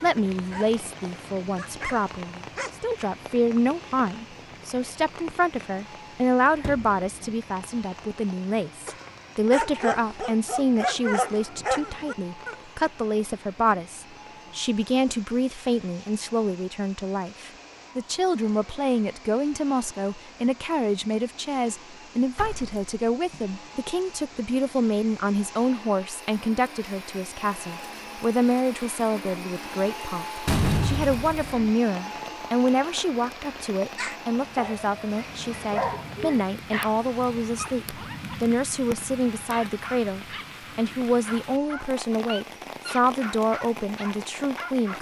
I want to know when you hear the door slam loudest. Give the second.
31 s.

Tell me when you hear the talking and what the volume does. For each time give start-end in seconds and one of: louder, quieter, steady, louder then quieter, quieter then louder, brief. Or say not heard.
0.0-44.9 steady.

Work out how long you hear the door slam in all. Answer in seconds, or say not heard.
3 s.